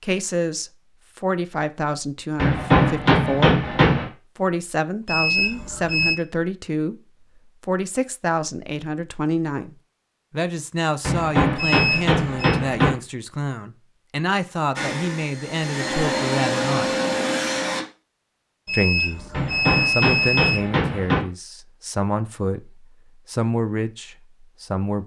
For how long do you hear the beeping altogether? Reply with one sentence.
The beeping can be heard for 4 seconds in total.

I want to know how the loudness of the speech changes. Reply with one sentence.
The volume of the speech stays about the same.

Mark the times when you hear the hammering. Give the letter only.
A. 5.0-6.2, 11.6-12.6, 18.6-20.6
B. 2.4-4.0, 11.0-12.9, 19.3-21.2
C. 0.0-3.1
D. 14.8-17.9
B.